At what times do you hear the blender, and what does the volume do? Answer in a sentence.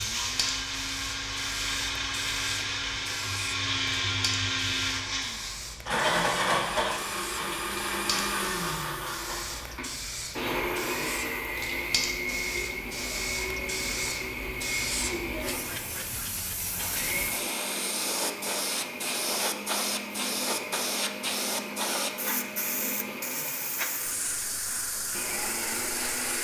The blender can be heard from 0.0 to 26.3 s, getting quieter.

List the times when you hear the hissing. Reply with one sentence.
The hissing can be heard from 0.0 to 26.3 s.